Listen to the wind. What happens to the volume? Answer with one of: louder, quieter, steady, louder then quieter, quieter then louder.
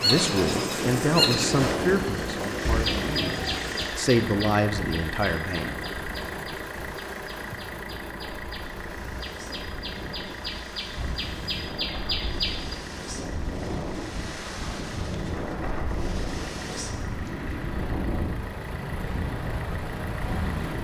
quieter then louder.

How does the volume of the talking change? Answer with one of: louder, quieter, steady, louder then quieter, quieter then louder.
quieter then louder.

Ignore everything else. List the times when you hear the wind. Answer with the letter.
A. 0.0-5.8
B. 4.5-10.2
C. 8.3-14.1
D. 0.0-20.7
D.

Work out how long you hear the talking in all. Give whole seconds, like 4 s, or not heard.
6 s.